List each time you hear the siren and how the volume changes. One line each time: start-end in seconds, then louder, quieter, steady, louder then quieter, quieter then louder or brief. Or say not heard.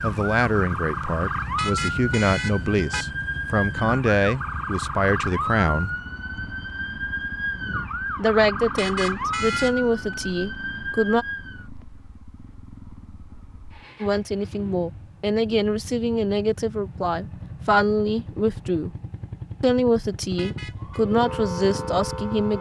0.0-11.7 steady
20.8-22.5 brief.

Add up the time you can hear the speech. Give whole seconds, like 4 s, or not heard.
17 s.